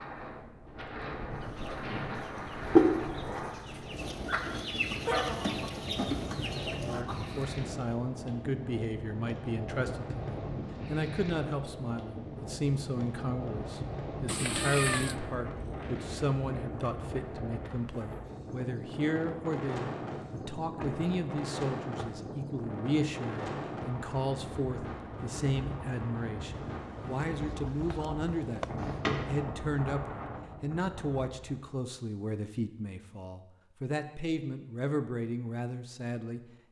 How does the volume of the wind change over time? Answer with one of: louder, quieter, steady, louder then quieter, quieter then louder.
steady.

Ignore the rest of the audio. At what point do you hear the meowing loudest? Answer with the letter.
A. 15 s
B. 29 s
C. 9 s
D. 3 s
A.